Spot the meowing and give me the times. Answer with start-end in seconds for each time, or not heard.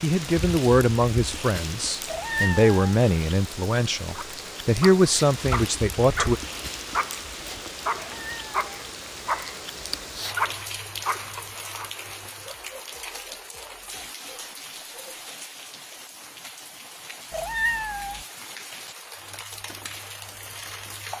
2.0-3.0, 8.0-8.8, 17.3-18.2.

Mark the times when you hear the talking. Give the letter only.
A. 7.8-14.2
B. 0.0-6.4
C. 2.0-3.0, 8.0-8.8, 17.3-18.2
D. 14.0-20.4
B.